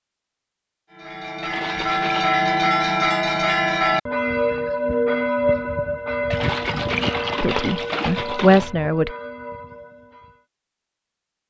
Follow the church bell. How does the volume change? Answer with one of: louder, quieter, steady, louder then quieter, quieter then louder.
quieter.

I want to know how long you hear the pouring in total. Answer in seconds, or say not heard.
3 s.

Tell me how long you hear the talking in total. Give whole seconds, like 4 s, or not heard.
2 s.